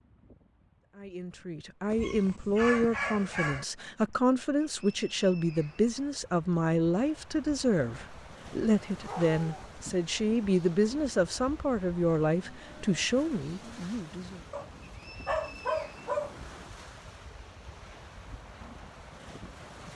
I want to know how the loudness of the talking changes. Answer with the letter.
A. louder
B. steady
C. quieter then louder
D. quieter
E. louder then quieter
B.